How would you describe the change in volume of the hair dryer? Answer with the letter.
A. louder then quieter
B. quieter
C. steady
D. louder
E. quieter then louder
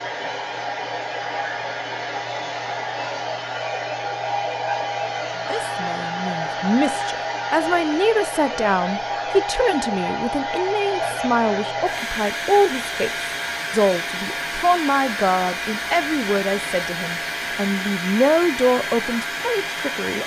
C.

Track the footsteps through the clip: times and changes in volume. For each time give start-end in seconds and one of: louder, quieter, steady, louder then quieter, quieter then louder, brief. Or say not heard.
not heard.